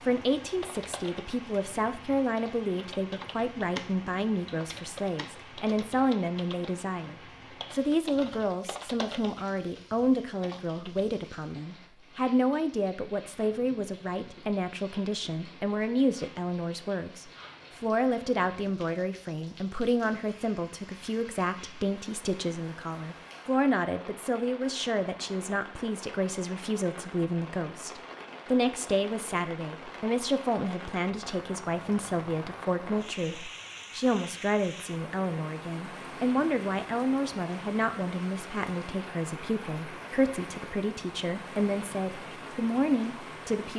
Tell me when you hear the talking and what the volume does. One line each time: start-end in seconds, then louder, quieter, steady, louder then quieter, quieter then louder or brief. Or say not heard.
0.0-43.7 steady.